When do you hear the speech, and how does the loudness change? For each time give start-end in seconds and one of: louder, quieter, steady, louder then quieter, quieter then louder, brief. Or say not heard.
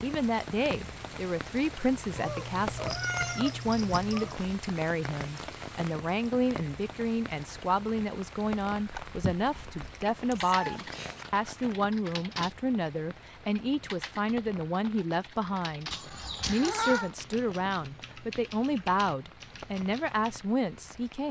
0.0-21.2 steady.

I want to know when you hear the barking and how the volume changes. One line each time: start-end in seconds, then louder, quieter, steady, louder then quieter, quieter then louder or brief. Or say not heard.
not heard.